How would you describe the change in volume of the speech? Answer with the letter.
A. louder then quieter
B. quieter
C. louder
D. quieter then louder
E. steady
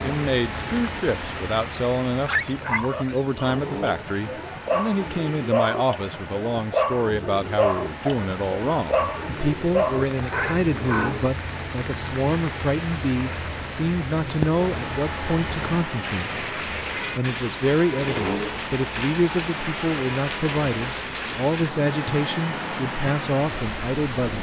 E.